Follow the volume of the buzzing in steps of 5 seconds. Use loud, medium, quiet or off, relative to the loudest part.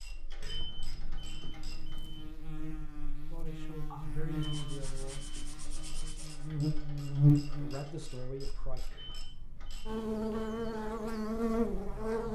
quiet, loud, loud.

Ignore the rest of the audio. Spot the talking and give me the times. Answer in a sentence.
You can hear the talking from 3.3 to 5.2 s and from 7.5 to 8.9 s.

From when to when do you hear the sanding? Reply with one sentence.
The sanding can be heard from 3.9 to 6.5 s.